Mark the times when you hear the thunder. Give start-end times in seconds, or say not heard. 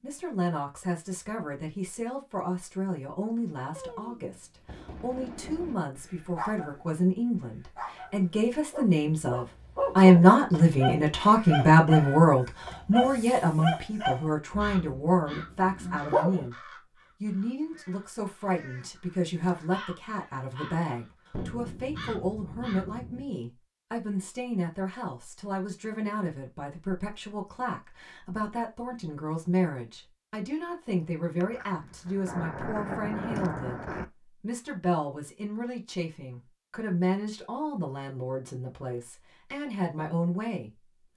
3.8-5.8, 21.3-23.3, 31.4-34.0.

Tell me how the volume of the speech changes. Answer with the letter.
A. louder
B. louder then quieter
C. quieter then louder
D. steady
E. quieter
B.